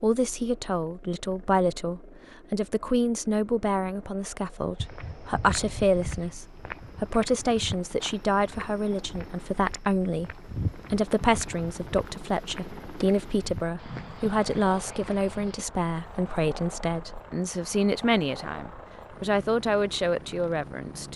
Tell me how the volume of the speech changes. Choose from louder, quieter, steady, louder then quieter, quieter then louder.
steady.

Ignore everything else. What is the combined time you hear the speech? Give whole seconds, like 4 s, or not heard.
21 s.